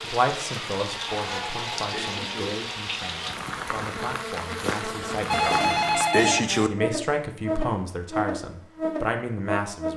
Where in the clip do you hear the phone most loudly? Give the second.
6 s.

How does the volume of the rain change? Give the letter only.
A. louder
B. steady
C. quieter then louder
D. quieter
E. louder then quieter
B.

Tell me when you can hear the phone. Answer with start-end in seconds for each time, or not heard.
1.3-2.5, 5.3-6.7.